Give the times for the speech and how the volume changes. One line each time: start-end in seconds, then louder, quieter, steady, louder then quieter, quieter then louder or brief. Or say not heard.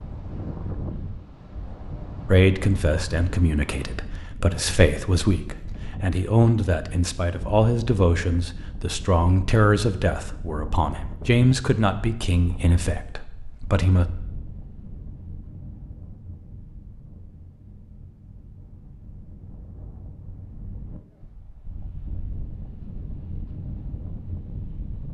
2.2-14.1 steady.